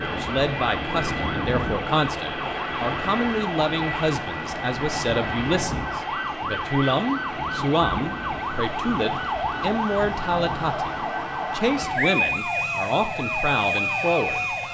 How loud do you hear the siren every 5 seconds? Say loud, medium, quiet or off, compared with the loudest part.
medium, loud, loud.